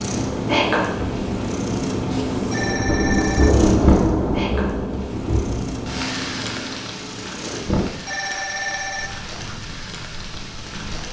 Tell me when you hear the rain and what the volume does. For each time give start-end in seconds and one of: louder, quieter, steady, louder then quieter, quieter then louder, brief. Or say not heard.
0.0-11.0 louder then quieter.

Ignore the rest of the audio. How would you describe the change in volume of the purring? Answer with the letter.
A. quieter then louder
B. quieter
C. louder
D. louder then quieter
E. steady
B.